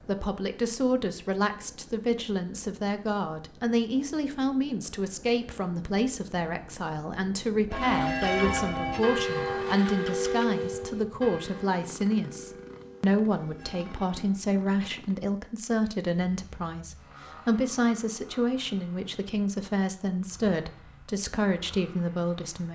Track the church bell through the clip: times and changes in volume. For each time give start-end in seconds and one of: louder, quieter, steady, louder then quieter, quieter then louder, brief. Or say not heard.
7.7-14.3 quieter.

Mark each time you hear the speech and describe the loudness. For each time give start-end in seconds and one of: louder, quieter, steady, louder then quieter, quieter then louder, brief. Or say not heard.
0.0-22.7 steady.